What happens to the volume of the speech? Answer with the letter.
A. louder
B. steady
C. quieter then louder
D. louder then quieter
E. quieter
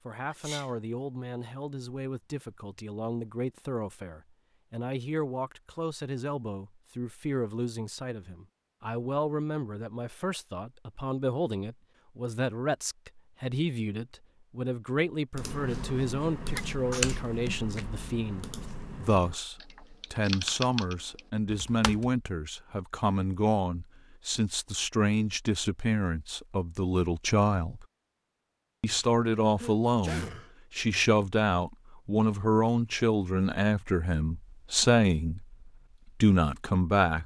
A.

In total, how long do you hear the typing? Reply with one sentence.
The typing can be heard for 7 seconds in total.